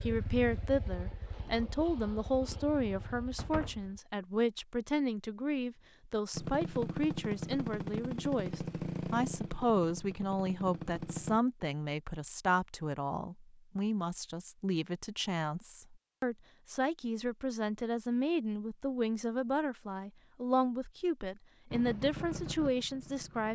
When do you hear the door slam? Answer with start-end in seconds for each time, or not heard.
3.4-3.9.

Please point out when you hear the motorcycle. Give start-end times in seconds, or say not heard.
0.0-4.0, 6.3-11.4, 21.7-23.4.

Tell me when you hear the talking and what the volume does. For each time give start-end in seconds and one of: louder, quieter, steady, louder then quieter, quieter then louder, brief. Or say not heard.
0.0-23.4 steady.